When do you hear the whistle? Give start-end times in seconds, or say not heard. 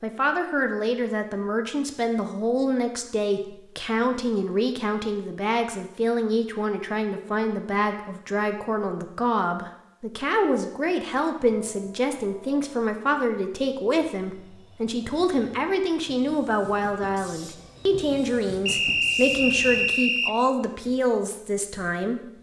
18.6-20.4.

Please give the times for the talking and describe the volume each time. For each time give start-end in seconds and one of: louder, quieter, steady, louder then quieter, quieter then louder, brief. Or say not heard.
0.0-22.3 steady.